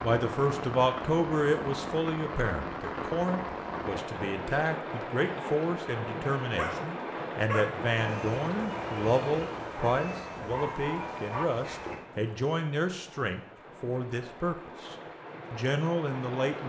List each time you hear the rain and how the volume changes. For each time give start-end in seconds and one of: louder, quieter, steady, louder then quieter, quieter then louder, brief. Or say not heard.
0.0-16.6 quieter.